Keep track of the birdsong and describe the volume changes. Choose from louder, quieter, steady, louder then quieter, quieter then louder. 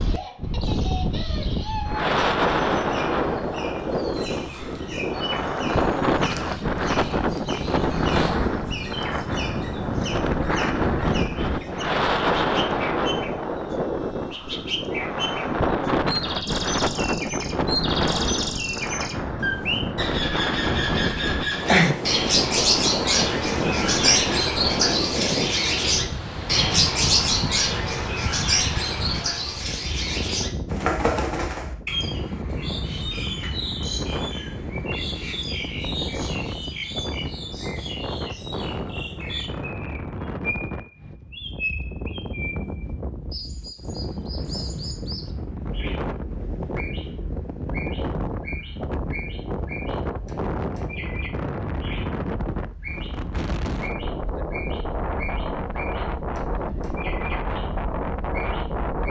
louder then quieter.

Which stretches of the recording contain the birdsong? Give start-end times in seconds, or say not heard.
0.0-58.9.